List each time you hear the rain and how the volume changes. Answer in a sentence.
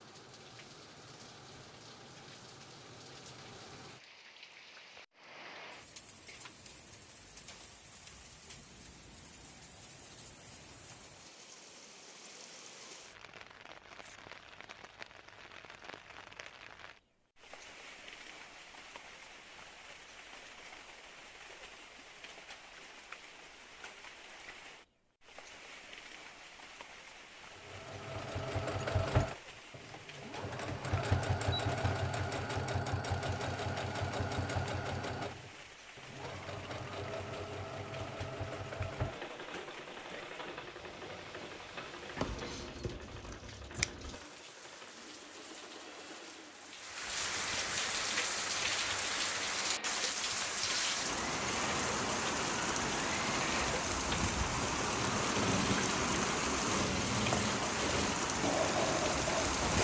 You can hear the rain from 0.0 to 59.7 s, getting louder.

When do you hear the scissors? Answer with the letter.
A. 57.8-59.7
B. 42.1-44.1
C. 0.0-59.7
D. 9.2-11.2
B.